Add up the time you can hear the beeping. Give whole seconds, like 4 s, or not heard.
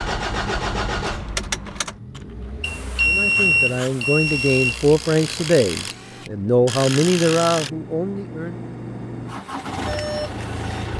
2 s.